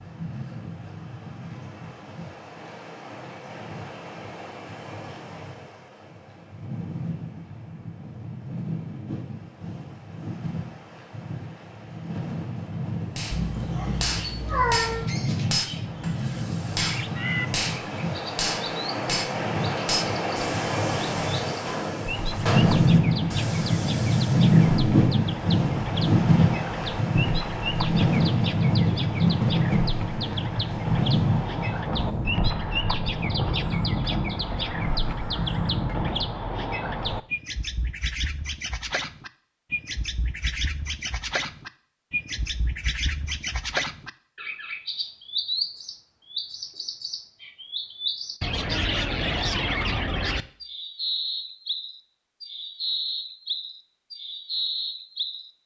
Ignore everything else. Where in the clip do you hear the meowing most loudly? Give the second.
15 s.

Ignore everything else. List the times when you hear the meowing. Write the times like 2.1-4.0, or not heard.
13.3-15.1.